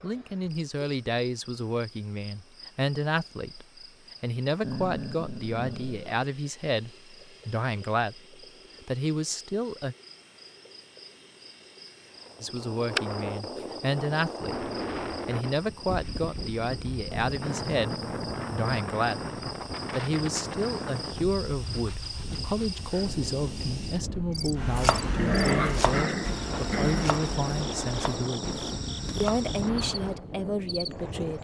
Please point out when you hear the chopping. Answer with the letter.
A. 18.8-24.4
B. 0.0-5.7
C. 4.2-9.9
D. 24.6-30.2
D.